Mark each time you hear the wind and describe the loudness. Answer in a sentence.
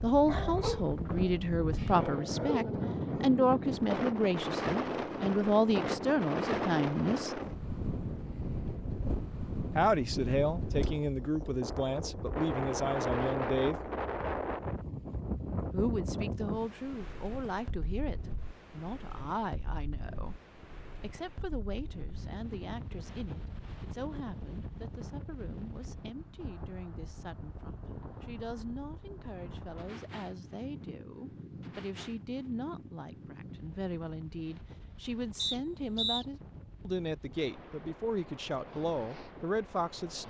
You can hear the wind from 0.0 to 40.2 s, getting quieter.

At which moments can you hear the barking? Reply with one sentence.
You can hear the barking from 0.2 to 2.9 s.